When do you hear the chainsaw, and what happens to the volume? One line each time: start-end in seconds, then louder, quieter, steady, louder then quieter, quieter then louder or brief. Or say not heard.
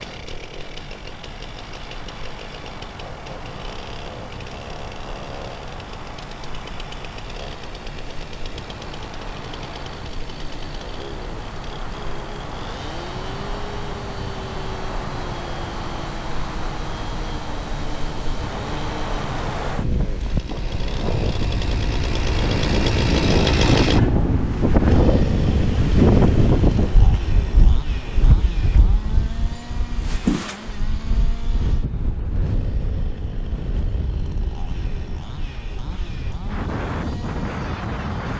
0.0-38.3 louder then quieter.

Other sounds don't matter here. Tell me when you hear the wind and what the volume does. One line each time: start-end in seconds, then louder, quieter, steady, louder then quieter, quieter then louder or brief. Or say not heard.
0.0-38.3 louder then quieter.